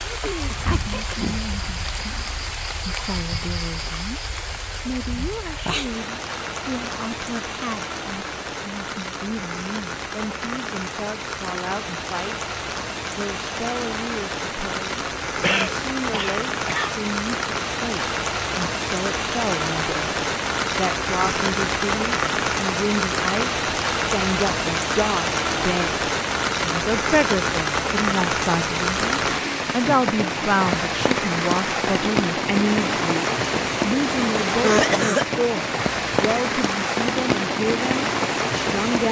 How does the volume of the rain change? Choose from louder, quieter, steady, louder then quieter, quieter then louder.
louder.